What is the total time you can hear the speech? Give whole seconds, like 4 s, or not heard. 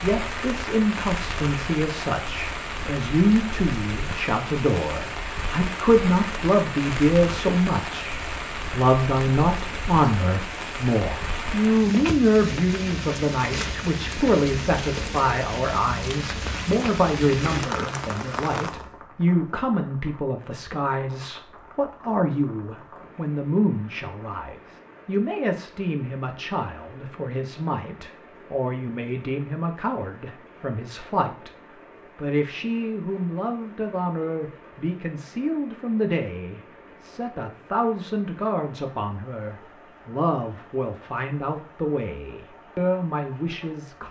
44 s.